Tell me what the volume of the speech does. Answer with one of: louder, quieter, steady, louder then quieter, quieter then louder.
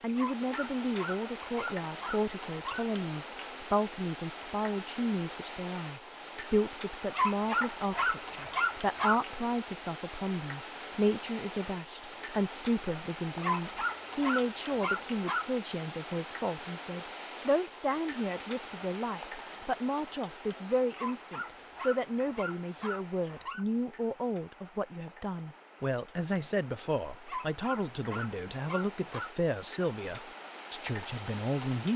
steady.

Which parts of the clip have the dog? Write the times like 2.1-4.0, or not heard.
0.1-2.9, 7.2-9.2, 13.4-15.4, 20.9-23.6, 27.2-29.3.